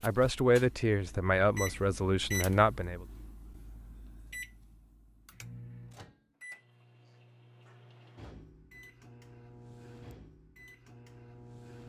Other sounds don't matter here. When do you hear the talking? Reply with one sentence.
You can hear the talking from 0.0 to 3.0 s.